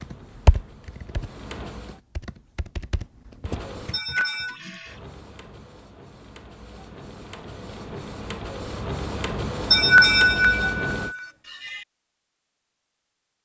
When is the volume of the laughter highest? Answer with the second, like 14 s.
10 s.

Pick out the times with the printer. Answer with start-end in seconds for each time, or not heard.
0.0-2.0, 3.5-11.2.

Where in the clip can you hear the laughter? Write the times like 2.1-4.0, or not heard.
3.9-4.5, 9.7-11.8.